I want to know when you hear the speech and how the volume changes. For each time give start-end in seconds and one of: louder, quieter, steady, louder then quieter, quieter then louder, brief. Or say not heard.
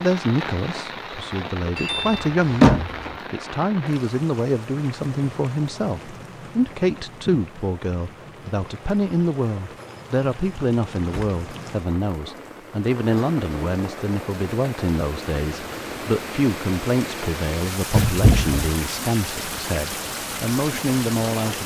0.0-21.6 steady.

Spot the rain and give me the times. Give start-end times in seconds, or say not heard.
0.0-21.6.